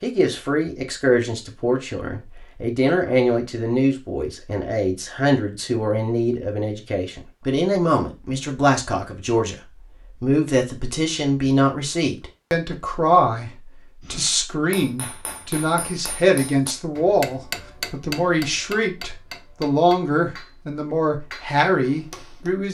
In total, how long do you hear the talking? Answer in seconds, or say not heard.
22 s.